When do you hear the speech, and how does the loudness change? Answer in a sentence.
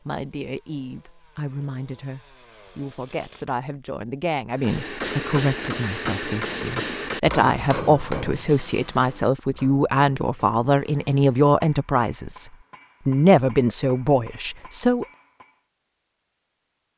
You can hear the speech from 0.1 to 15.1 s, getting louder.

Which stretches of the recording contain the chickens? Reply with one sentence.
The chickens can't be heard in this clip.